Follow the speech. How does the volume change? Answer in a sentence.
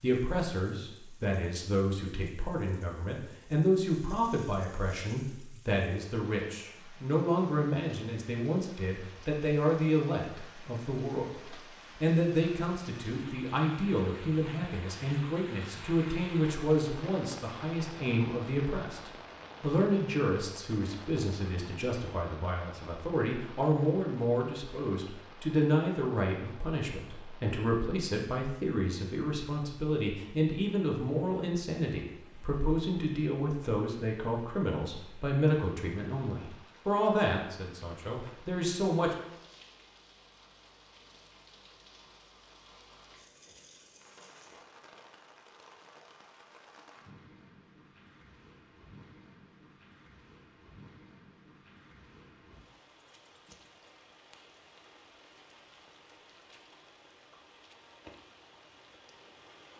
The volume of the speech stays about the same.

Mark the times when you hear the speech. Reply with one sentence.
The speech can be heard from 0.0 to 39.1 s.